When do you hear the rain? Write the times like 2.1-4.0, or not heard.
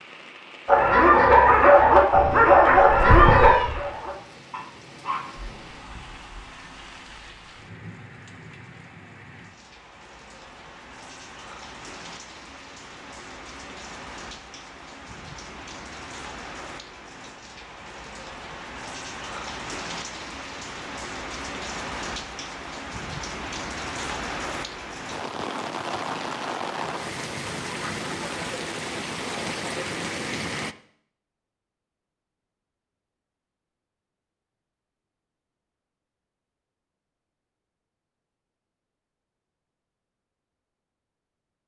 0.0-30.8.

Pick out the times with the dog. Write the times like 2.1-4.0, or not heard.
0.7-6.2.